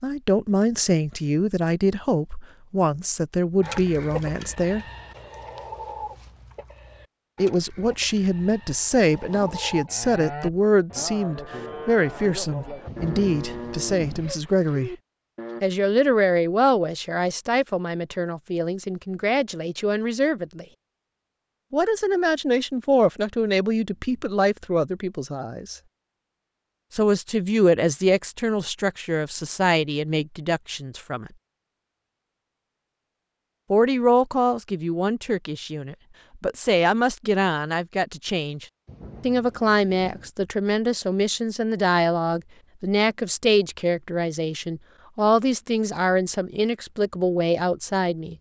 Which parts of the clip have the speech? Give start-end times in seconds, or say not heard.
0.0-4.8, 7.3-14.9, 15.6-20.6, 21.7-25.8, 26.9-31.3, 33.7-48.3.